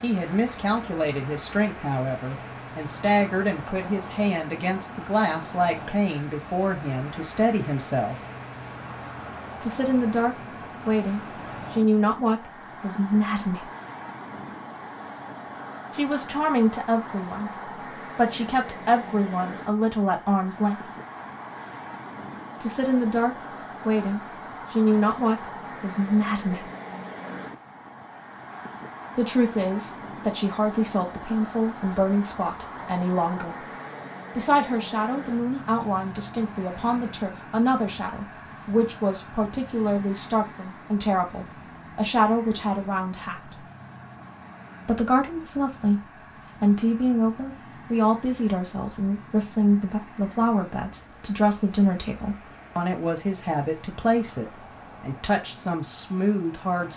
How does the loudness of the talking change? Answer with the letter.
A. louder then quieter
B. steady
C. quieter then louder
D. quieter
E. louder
B.